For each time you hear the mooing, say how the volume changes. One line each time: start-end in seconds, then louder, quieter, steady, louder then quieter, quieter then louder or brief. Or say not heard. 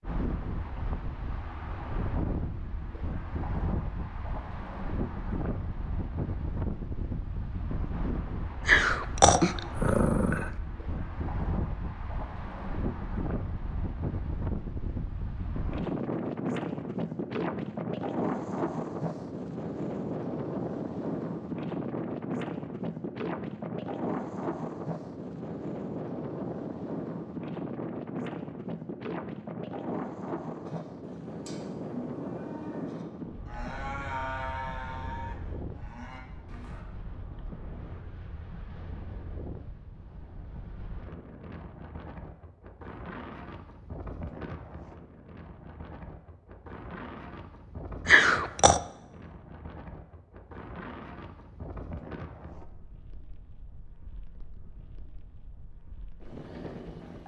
30.6-36.9 louder then quieter.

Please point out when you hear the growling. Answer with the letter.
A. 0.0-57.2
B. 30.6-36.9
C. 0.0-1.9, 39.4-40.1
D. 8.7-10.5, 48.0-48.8
D.